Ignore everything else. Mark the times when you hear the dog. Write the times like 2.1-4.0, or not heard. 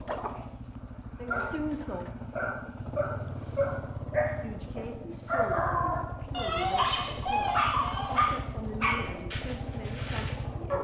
0.8-10.7.